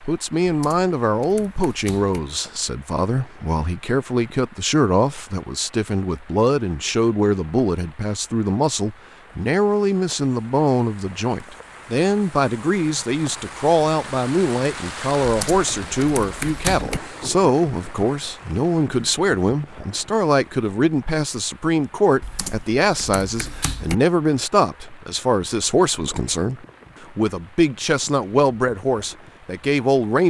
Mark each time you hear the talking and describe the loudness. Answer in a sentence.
You can hear the talking from 0.0 to 30.2 s, at a steady volume.